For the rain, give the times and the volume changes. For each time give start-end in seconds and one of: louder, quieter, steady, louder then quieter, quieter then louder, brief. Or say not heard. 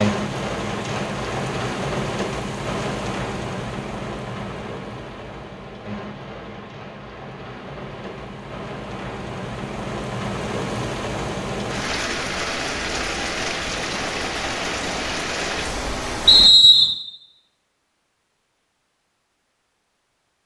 0.0-16.5 quieter then louder.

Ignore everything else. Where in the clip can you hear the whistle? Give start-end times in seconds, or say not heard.
16.2-16.9.